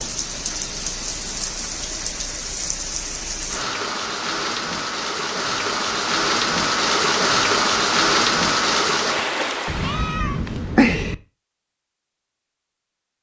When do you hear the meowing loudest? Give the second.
11 s.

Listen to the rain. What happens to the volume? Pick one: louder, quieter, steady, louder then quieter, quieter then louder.
louder.